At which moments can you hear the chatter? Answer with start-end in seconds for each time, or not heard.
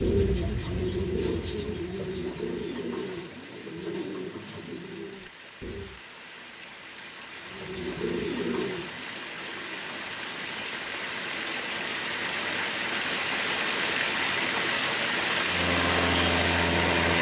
not heard.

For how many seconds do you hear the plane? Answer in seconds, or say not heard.
2 s.